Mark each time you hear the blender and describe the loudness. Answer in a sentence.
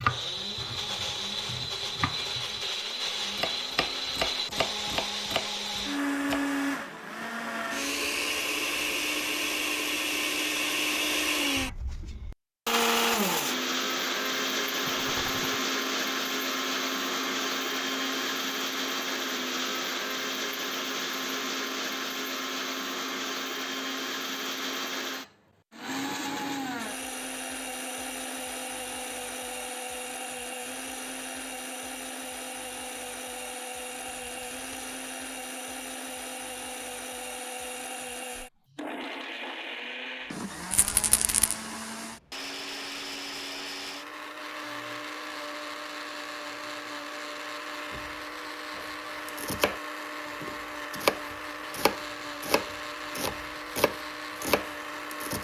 The blender can be heard from 0.0 to 55.3 s, getting quieter.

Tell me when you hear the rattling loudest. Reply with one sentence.
The volume of the rattling peaks at 41 seconds.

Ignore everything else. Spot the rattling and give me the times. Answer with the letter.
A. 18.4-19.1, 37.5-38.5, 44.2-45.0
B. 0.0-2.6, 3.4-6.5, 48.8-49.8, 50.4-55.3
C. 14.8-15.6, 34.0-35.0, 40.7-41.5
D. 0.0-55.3
C.